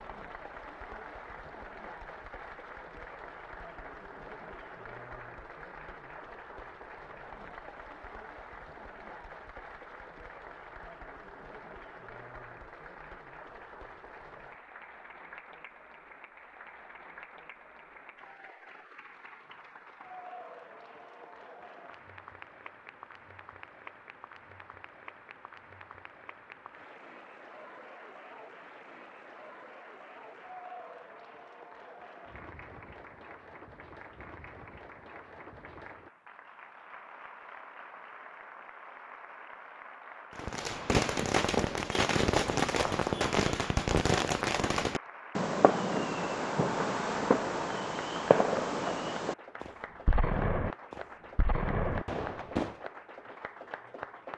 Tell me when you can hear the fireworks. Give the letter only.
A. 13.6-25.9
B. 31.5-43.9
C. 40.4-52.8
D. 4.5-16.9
C.